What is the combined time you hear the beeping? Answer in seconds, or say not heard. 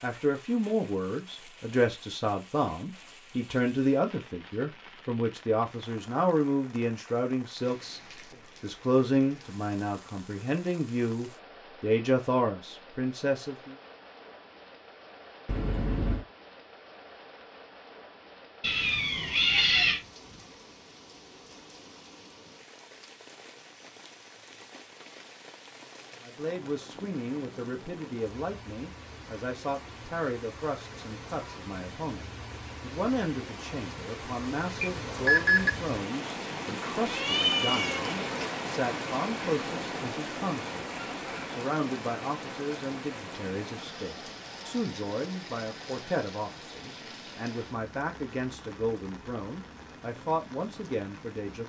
2 s.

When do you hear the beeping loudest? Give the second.
35 s.